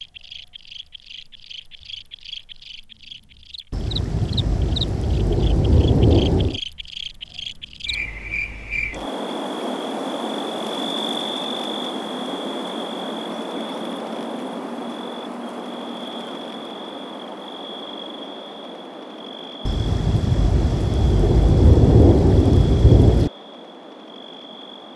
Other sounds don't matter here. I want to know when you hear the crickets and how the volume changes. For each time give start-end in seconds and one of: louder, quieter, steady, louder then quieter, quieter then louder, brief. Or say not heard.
0.0-24.9 louder then quieter.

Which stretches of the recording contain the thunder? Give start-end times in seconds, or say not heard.
3.7-6.6, 19.6-23.3.